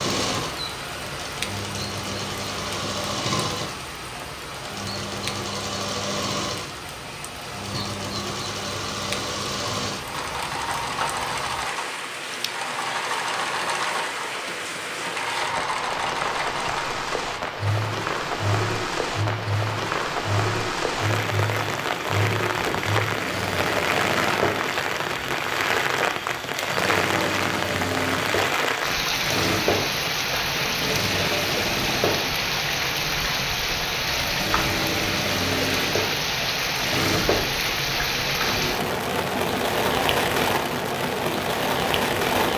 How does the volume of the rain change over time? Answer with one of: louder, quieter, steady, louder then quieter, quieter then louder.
louder.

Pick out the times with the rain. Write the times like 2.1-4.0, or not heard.
0.0-42.5.